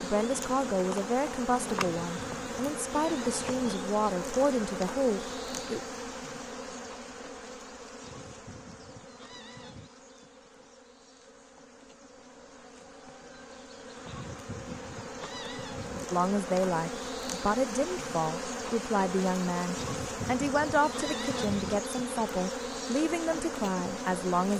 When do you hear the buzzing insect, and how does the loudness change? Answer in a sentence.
You can hear the buzzing insect from 0.0 to 24.5 s, getting quieter then louder.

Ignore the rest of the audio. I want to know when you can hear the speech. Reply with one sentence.
You can hear the speech from 0.0 to 5.8 s and from 16.1 to 24.5 s.